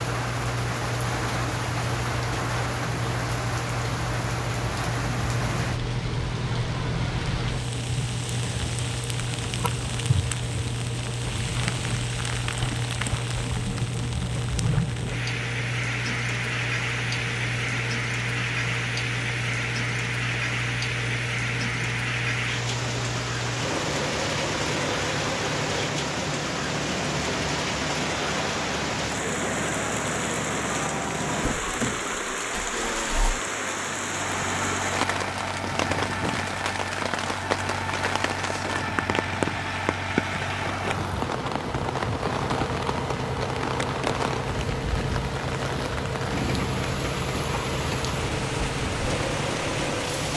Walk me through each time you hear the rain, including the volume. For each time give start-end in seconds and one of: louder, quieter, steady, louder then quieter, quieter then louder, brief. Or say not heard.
0.0-50.3 steady.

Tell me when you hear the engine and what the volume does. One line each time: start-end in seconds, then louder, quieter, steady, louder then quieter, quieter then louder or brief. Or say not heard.
0.0-50.3 steady.